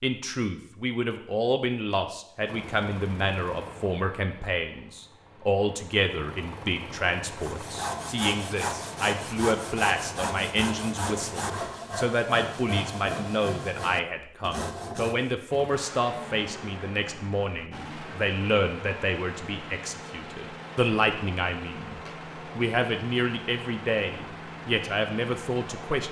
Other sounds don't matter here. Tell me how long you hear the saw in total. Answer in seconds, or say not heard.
8 s.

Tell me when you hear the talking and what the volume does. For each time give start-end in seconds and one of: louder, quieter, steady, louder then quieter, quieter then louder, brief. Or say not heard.
0.0-26.0 steady.